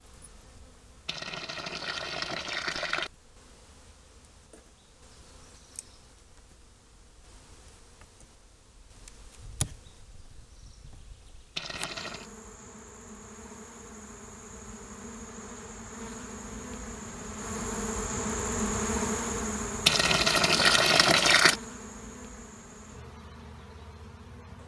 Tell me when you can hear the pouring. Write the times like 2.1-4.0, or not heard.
1.1-3.1, 11.6-12.2, 19.9-21.6.